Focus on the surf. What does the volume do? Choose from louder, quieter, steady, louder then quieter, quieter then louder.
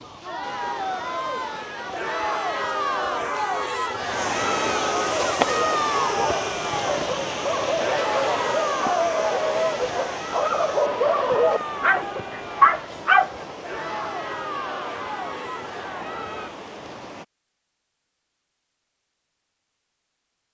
louder then quieter.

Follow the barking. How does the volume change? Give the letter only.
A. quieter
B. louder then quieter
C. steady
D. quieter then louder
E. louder
E.